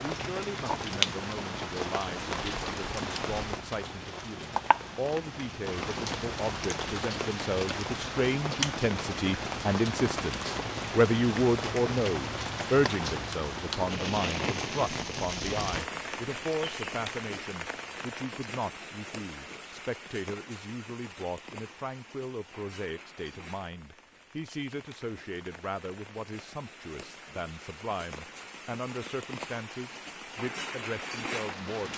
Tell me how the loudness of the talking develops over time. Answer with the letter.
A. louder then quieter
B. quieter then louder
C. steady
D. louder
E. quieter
A.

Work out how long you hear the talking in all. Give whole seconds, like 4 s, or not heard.
32 s.